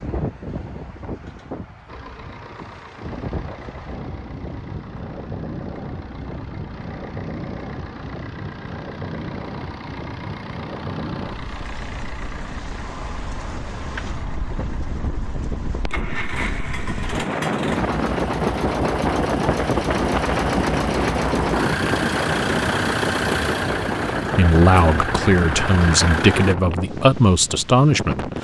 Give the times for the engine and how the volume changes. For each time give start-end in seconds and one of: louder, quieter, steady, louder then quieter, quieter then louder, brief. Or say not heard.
1.9-26.6 louder.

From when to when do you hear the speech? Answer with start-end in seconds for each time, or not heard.
24.4-28.3.